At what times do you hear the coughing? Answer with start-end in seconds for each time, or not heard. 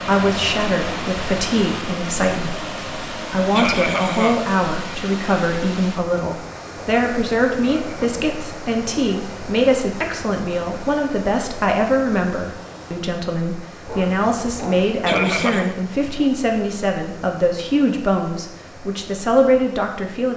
3.5-4.5, 7.6-8.2, 15.1-15.8.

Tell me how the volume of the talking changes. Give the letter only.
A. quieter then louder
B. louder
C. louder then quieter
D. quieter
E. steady
E.